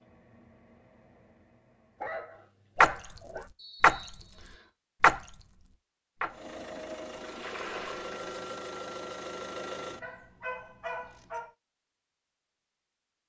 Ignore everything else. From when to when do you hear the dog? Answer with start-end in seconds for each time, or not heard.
2.0-3.5, 10.0-11.6.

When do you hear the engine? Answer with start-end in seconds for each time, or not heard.
0.0-2.5, 6.2-10.2.